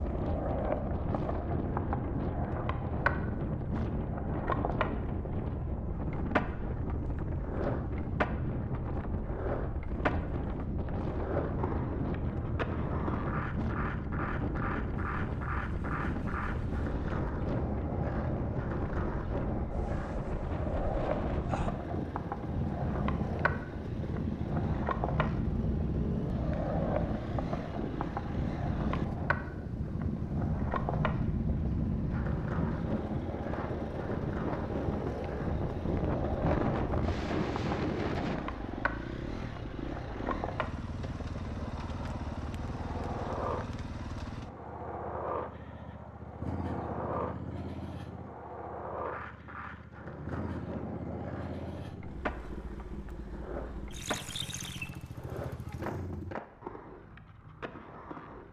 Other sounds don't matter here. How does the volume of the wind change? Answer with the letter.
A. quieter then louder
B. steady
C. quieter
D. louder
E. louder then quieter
B.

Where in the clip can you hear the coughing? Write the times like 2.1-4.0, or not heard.
not heard.